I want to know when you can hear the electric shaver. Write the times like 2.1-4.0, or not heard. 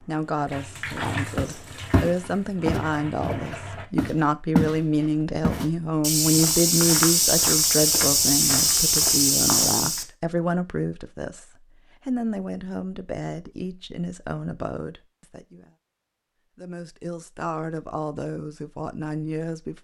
not heard.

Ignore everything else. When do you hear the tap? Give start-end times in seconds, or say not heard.
0.0-3.9.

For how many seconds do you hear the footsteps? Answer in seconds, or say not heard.
9 s.